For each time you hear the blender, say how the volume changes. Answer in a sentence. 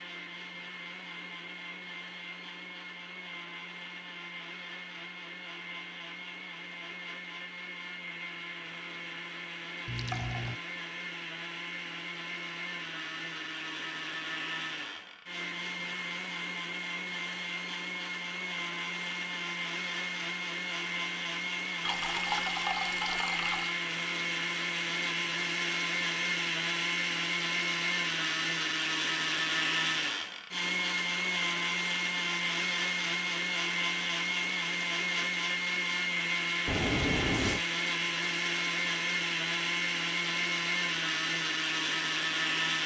You can hear the blender from 0.0 to 42.8 s, getting louder.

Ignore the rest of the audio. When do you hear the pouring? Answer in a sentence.
The pouring can be heard from 9.8 to 10.6 s, from 21.9 to 23.8 s and from 36.6 to 37.6 s.